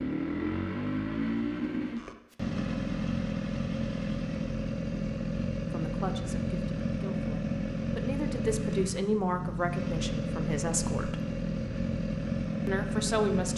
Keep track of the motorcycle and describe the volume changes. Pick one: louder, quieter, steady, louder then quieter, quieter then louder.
steady.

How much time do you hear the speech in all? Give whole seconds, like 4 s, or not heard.
6 s.